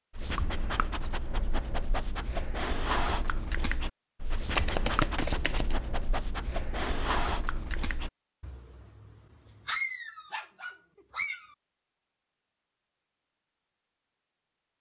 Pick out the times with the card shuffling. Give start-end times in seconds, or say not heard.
4.5-5.8.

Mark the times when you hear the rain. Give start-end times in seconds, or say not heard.
not heard.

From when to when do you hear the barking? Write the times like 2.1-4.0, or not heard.
0.1-11.6.